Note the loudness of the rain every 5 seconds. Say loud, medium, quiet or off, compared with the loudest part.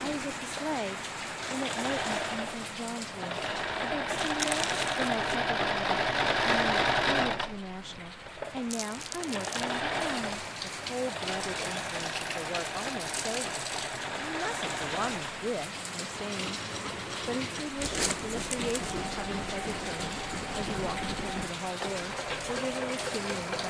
loud, medium, loud, loud, loud.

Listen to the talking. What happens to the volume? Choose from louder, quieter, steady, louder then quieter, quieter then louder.
steady.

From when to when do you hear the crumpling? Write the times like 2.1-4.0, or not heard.
4.2-5.3, 8.7-9.8, 17.8-18.9.